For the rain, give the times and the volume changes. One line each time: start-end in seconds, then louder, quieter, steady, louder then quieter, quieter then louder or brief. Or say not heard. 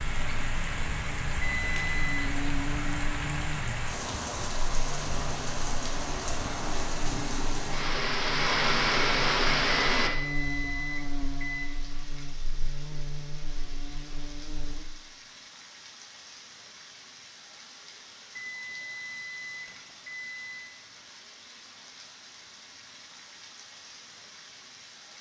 0.0-25.1 louder then quieter.